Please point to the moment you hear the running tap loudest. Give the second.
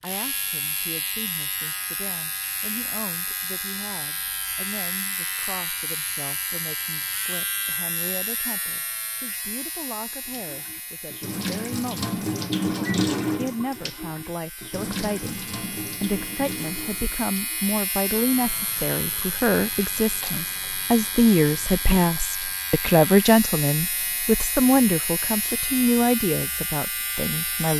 13 s.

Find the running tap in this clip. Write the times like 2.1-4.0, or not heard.
10.2-21.9.